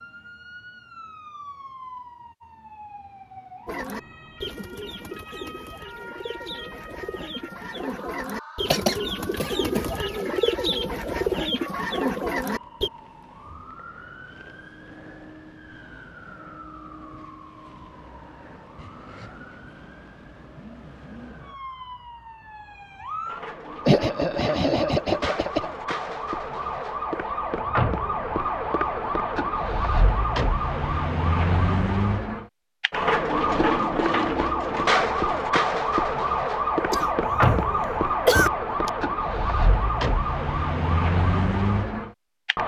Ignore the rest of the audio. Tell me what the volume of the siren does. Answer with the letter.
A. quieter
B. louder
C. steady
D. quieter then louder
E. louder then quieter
B.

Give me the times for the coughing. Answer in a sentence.
The coughing can be heard from 8.7 to 9.8 s, from 23.9 to 25.7 s, from 36.9 to 37.5 s and from 38.2 to 38.9 s.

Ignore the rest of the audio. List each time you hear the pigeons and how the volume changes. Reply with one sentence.
You can hear the pigeons from 3.6 to 12.9 s, getting louder.